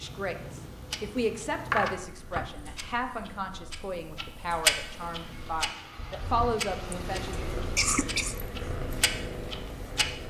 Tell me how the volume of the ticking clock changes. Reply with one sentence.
The loudness of the ticking clock goes up, then down.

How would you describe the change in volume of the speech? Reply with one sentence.
The volume of the speech goes down, then up.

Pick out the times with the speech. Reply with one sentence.
You can hear the speech from 0.0 to 7.5 s.